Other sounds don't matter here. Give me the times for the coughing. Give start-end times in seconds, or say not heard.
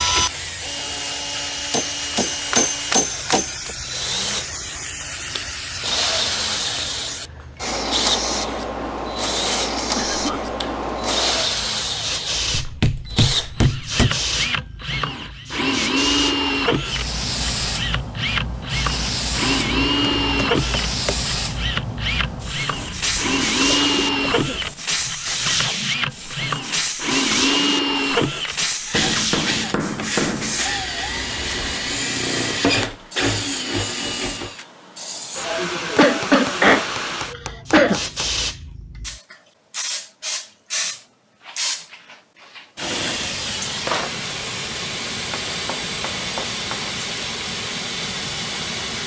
9.9-10.5, 22.7-24.8, 35.4-38.0.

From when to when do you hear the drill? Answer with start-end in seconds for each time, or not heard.
0.0-34.6.